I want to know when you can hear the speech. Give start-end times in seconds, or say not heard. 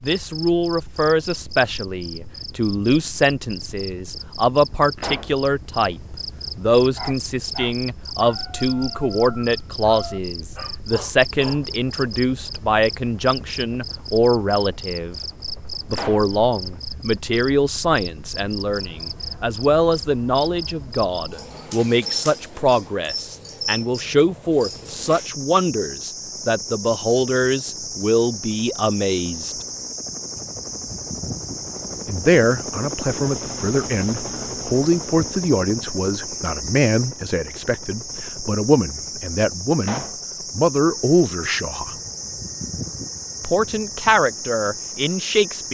0.0-15.2, 15.9-29.6, 32.0-42.0, 43.4-45.7.